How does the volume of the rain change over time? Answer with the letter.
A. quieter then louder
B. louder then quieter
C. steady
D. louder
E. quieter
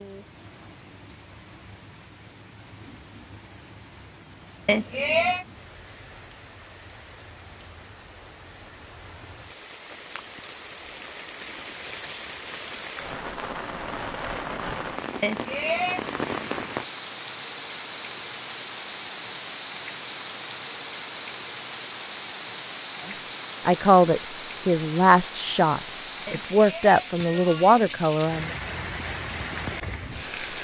D.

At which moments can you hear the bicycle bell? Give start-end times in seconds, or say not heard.
4.7-5.5, 15.2-16.0, 26.2-27.9.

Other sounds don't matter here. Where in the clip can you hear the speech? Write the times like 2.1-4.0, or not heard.
23.6-28.5.